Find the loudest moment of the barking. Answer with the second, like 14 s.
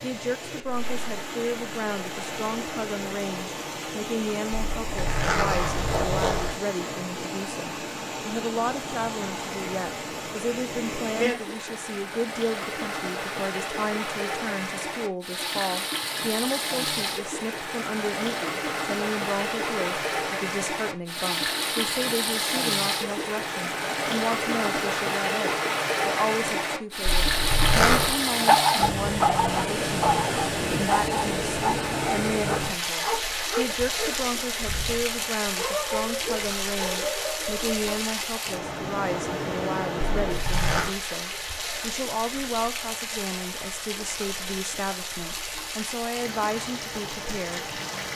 29 s.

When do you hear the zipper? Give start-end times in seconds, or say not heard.
4.5-6.5, 27.1-28.1, 40.2-41.0.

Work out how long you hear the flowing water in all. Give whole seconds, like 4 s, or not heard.
48 s.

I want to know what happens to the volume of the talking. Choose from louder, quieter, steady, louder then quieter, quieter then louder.
steady.